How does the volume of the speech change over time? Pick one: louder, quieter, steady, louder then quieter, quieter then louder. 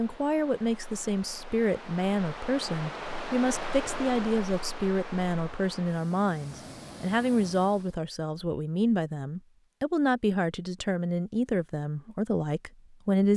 steady.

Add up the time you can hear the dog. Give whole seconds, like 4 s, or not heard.
not heard.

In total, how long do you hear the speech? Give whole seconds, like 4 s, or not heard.
13 s.